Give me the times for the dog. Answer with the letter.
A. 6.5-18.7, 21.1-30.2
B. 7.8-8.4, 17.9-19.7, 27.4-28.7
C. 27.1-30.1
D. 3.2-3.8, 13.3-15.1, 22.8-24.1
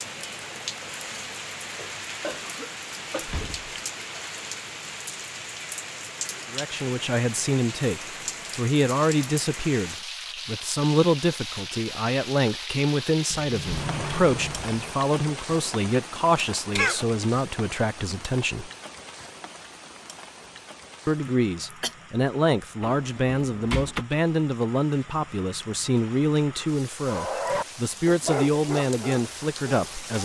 C.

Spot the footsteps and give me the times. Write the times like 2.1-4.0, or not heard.
not heard.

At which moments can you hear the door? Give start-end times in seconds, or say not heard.
3.2-3.8, 13.3-15.1, 22.8-24.1.